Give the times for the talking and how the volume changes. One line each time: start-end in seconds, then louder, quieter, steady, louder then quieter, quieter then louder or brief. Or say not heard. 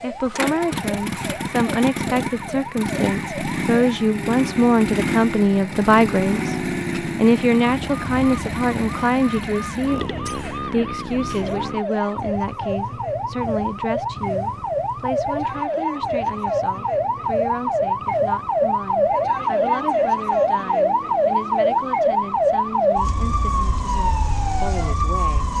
0.0-25.5 quieter.